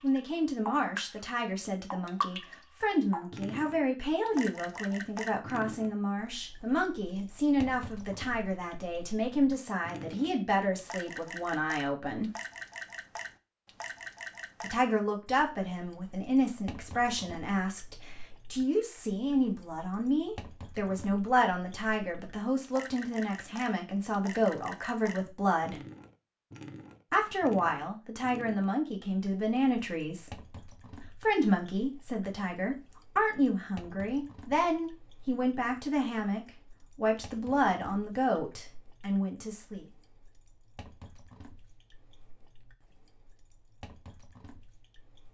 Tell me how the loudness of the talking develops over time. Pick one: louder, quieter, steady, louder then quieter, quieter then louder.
steady.